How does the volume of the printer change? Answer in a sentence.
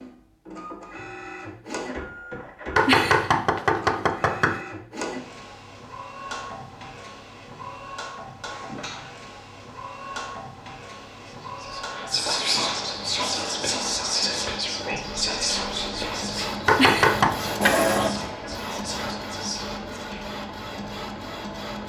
The loudness of the printer goes up.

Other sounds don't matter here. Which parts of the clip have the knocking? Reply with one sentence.
The knocking can be heard from 2.8 to 4.6 s and from 16.6 to 17.4 s.